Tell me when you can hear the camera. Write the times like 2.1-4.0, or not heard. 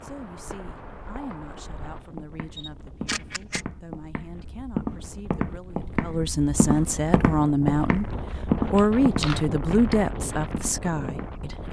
2.5-3.6, 8.8-9.4.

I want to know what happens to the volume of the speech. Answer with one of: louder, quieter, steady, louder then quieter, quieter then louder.
louder.